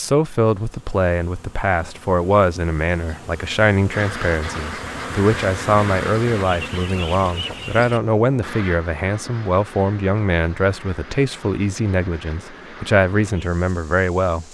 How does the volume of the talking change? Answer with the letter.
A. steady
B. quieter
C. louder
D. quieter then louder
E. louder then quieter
A.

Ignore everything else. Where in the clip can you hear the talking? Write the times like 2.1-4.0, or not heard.
0.0-14.5.